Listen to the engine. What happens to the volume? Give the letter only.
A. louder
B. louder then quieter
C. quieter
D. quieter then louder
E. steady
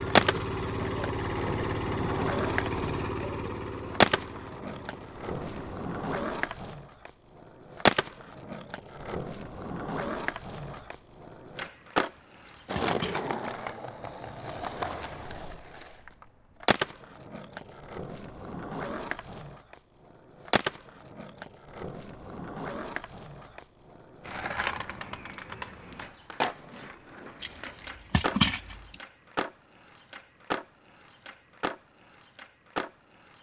C.